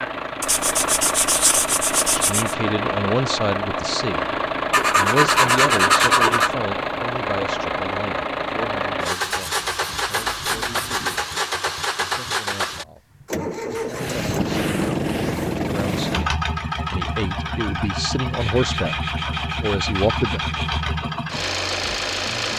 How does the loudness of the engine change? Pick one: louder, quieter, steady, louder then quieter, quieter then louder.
steady.